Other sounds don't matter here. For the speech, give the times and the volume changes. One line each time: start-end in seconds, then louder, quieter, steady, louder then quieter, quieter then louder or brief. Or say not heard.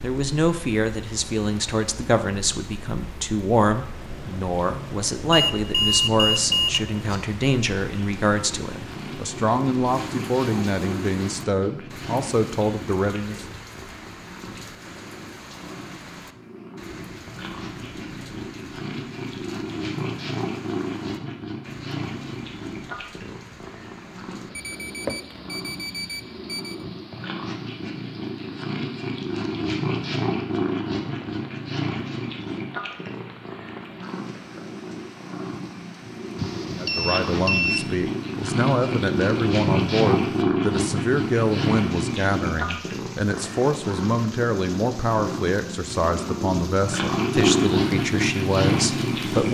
0.0-13.3 steady
36.8-49.4 steady.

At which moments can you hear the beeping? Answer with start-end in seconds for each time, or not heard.
5.3-6.8, 24.6-26.8, 36.4-37.9.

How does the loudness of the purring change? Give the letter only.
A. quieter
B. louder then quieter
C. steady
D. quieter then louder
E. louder
E.